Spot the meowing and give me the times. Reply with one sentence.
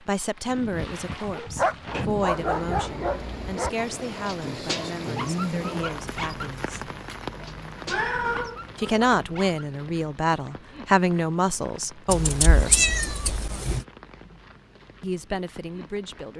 The meowing can be heard from 1.9 to 3.5 s, from 7.8 to 8.6 s and from 12.1 to 13.8 s.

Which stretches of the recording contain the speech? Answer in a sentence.
You can hear the speech from 0.1 to 6.8 s, from 8.8 to 12.9 s and from 15.0 to 16.3 s.